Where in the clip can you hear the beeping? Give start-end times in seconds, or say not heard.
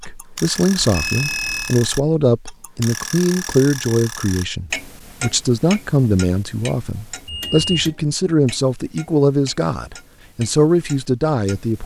0.8-1.8, 7.2-8.0.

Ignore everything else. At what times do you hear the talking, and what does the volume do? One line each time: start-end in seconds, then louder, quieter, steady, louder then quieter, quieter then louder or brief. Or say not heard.
0.0-11.8 steady.